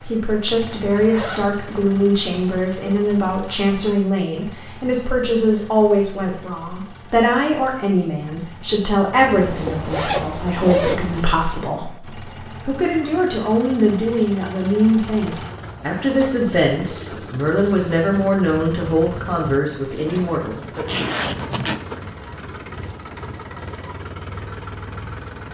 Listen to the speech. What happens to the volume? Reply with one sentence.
The loudness of the speech stays about the same.